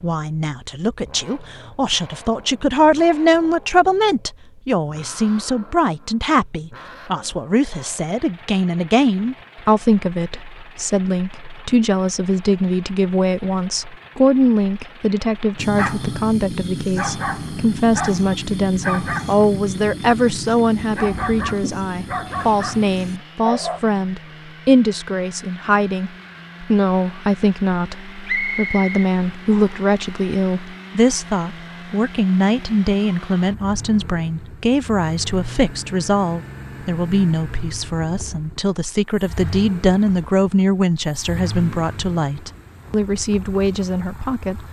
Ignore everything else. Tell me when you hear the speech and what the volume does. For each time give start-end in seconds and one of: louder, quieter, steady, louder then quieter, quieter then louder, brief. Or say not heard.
0.0-44.6 steady.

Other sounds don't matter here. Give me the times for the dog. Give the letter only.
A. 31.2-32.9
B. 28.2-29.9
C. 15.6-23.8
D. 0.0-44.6
C.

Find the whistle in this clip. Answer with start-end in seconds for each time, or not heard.
28.2-29.9.